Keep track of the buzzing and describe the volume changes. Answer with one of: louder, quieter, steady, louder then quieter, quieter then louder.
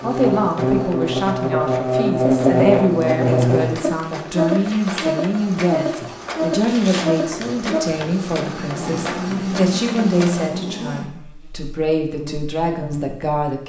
quieter.